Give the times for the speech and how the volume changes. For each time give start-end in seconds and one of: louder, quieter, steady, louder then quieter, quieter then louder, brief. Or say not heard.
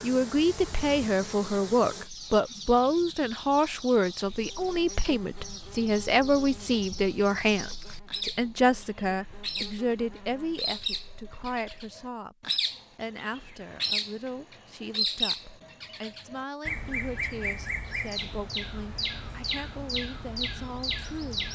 0.0-21.4 quieter.